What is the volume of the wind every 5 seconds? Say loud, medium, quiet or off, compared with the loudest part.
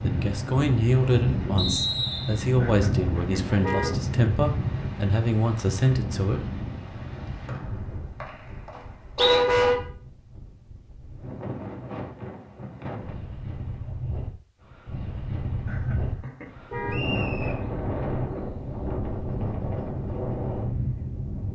loud, medium, medium, loud, loud.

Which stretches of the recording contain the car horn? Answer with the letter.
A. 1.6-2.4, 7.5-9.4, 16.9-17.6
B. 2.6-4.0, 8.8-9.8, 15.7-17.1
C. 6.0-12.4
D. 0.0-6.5
B.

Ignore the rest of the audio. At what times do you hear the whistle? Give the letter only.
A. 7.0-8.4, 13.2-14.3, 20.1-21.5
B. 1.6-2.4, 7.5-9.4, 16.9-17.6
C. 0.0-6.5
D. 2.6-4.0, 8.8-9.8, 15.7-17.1
B.